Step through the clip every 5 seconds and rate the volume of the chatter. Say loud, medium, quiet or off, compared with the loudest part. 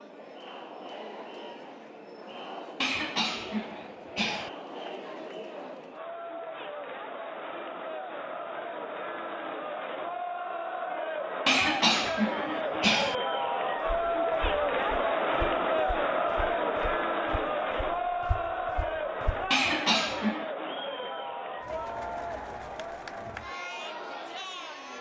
quiet, medium, loud, loud, medium.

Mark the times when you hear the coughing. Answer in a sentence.
You can hear the coughing from 2.8 to 4.5 s, from 11.4 to 13.2 s and from 19.5 to 20.4 s.